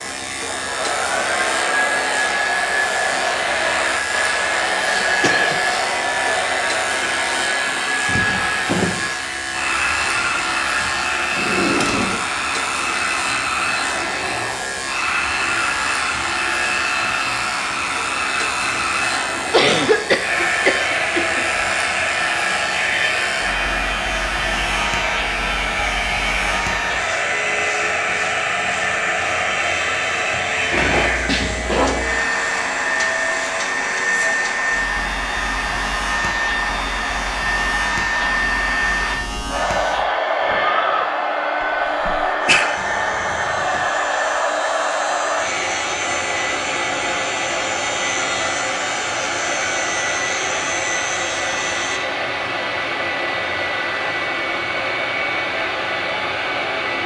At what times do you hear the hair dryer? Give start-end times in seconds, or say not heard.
0.0-57.0.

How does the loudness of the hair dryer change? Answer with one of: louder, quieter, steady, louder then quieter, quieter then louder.
steady.